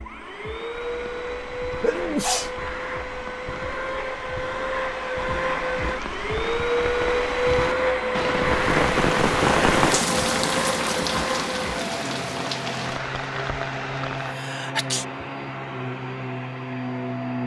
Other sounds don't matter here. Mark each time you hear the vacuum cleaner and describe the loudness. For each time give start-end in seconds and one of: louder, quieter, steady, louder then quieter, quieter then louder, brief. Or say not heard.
0.0-17.4 louder then quieter.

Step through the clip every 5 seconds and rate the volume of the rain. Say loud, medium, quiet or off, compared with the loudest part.
quiet, loud, loud, off.